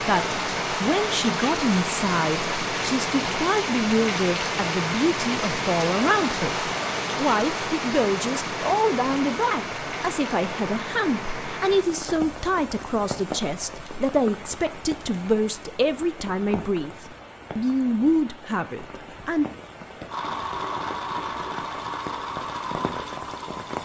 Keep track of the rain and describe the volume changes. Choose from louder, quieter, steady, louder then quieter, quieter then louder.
quieter.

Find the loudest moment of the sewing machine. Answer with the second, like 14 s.
21 s.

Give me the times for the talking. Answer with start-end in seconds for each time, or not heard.
0.0-19.4.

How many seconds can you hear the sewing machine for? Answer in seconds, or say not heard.
4 s.